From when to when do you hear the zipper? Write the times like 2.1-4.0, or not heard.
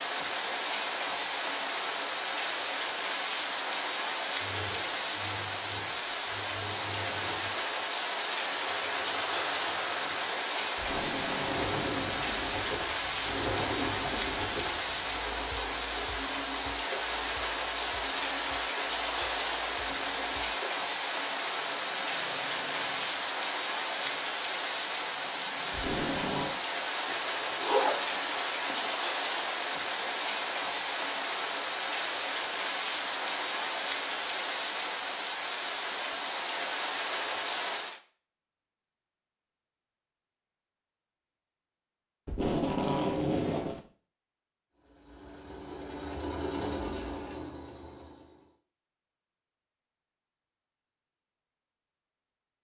27.1-28.9.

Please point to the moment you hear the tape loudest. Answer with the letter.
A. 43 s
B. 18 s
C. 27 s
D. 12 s
A.